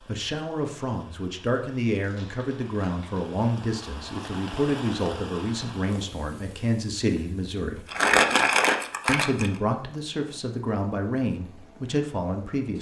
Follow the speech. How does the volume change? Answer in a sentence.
The volume of the speech stays about the same.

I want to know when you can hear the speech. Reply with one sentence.
The speech can be heard from 0.1 to 7.9 s and from 9.1 to 12.7 s.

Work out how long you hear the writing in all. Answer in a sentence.
You can't hear the writing here.